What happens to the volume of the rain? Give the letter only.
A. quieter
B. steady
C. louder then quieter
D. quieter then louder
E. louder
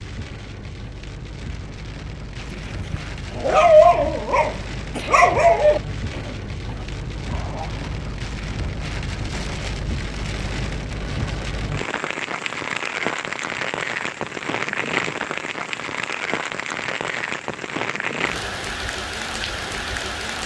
E.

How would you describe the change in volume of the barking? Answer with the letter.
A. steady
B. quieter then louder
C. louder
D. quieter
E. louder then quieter
D.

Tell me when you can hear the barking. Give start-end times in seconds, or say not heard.
2.4-8.0.